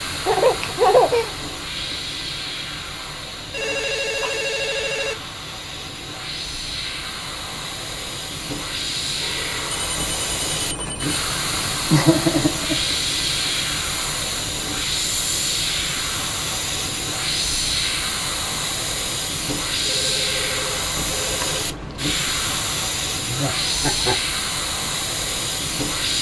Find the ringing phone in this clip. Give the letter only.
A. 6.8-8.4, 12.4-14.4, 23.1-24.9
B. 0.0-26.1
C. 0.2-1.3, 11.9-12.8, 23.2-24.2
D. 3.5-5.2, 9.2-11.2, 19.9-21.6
D.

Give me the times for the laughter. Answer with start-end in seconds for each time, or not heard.
0.2-1.3, 11.9-12.8, 23.2-24.2.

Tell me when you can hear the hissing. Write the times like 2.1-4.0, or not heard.
0.0-26.1.